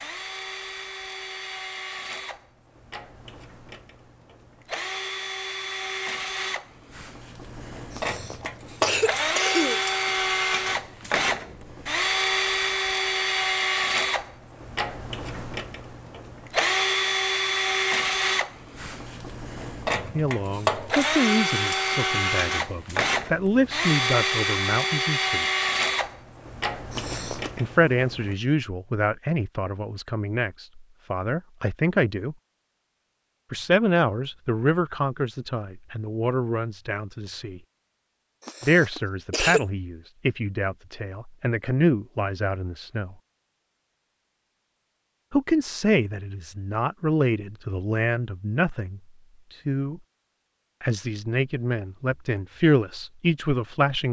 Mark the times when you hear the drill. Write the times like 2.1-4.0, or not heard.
0.0-28.4.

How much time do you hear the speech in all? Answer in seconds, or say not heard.
27 s.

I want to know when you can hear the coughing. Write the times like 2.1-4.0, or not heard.
8.0-9.8, 26.9-27.5, 38.5-39.6.